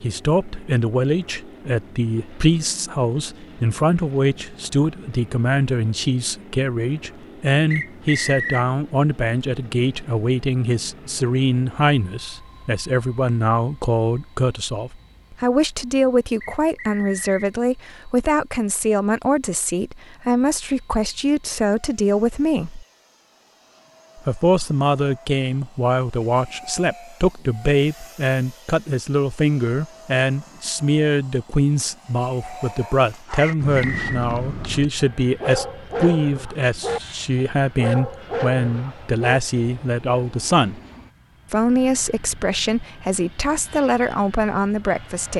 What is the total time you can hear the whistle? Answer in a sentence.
The whistle can be heard for 3 seconds in total.